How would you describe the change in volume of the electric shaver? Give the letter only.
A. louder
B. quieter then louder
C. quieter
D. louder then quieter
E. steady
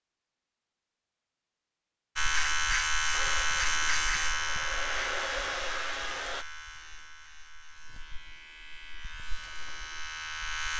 B.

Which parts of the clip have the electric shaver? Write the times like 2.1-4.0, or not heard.
2.1-10.7.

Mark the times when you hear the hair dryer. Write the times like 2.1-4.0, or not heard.
3.1-6.5.